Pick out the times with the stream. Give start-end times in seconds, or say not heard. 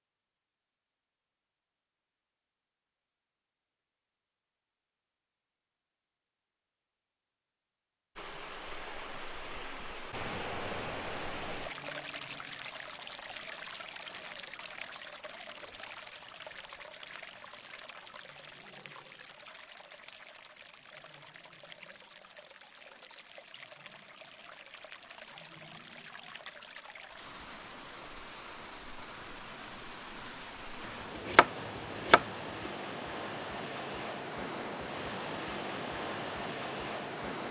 8.2-37.4.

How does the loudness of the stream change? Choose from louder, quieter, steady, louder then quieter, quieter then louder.
quieter then louder.